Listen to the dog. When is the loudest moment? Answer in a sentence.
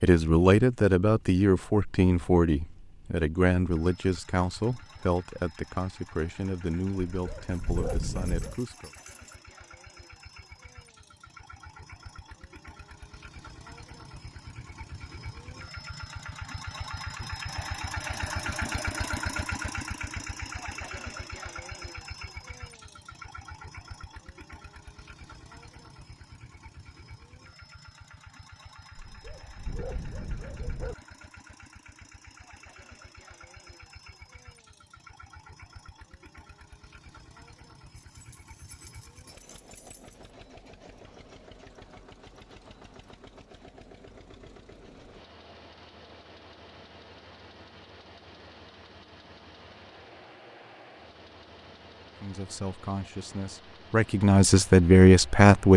The loudest moment of the dog is at 8 seconds.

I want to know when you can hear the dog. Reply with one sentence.
You can hear the dog from 7.2 to 8.6 s and from 28.9 to 30.9 s.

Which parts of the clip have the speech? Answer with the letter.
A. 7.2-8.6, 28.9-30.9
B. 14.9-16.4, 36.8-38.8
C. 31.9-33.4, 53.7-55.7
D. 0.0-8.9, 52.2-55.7
D.